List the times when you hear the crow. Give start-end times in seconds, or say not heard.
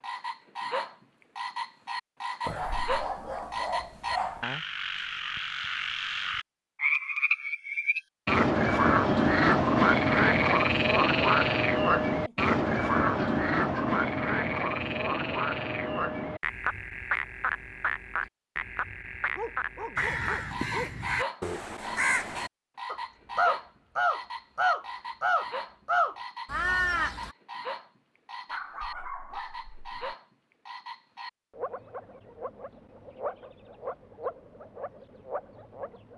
19.9-27.3.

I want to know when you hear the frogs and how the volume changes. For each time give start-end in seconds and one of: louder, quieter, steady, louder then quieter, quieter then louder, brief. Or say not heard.
0.0-36.1 louder then quieter.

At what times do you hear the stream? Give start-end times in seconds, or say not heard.
not heard.